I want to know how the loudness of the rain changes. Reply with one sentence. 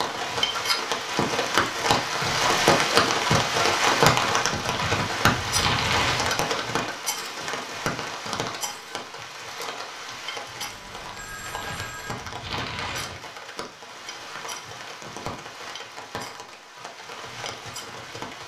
The volume of the rain goes down.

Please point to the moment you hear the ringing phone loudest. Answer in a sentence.
The loudest moment of the ringing phone is at 12 seconds.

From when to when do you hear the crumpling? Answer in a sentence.
The crumpling can be heard from 4.5 to 6.8 s and from 11.4 to 13.2 s.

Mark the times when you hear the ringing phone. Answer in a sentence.
The ringing phone can be heard from 10.6 to 12.2 s.